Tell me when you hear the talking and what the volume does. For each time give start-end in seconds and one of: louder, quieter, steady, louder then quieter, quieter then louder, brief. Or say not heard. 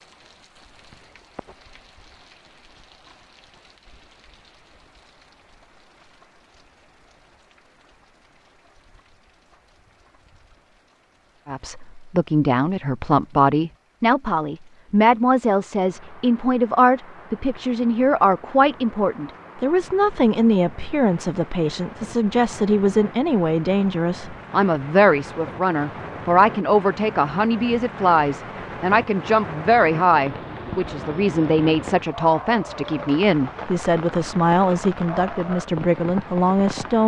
11.4-37.0 steady.